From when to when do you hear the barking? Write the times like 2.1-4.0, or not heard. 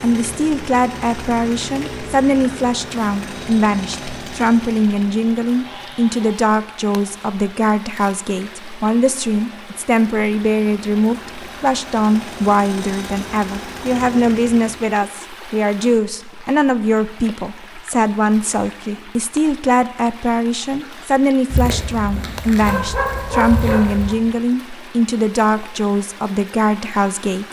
21.5-24.1.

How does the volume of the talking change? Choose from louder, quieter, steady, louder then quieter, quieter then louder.
steady.